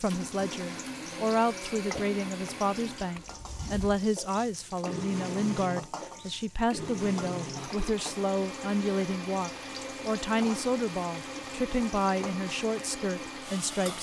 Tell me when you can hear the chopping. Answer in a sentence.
You can't hear the chopping here.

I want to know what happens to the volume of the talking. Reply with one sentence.
The volume of the talking stays about the same.